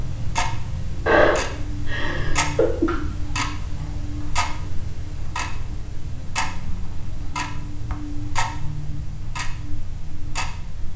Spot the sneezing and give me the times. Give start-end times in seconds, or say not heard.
1.1-3.0.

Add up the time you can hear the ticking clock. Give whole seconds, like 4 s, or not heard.
11 s.